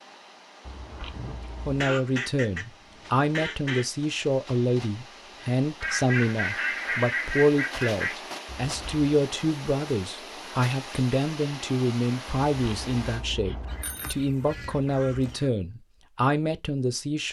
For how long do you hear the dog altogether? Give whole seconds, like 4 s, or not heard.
not heard.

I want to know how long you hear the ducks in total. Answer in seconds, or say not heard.
7 s.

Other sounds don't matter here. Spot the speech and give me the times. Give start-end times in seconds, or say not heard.
1.6-17.2.